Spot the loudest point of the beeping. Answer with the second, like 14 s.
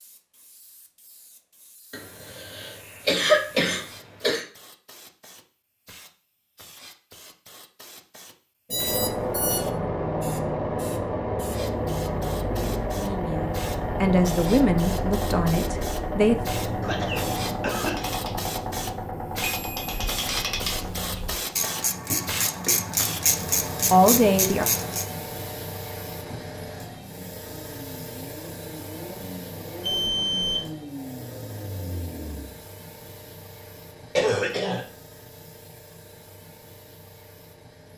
30 s.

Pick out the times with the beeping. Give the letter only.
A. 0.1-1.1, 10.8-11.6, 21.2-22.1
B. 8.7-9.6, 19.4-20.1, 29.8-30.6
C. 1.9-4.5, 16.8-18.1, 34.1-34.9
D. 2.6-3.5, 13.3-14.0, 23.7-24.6
B.